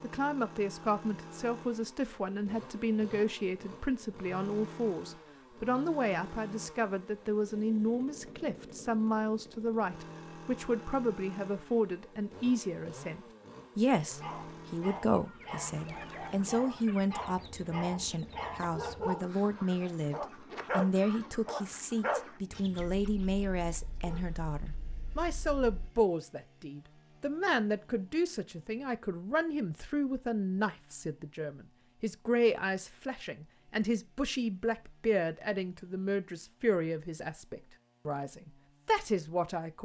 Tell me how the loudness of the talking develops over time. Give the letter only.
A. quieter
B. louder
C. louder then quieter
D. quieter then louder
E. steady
E.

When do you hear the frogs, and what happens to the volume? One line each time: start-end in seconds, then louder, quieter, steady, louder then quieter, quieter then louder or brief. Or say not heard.
not heard.